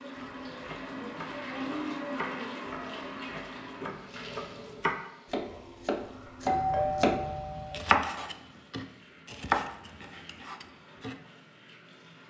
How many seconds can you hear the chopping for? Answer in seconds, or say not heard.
11 s.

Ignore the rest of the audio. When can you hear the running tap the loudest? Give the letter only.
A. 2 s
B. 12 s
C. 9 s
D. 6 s
A.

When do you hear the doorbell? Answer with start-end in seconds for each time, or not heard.
6.5-7.8.